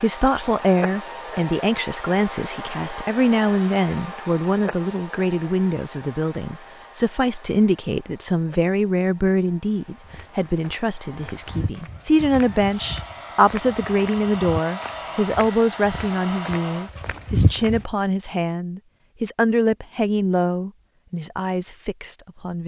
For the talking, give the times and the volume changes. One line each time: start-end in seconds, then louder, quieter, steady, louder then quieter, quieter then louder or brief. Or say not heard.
0.0-22.6 steady.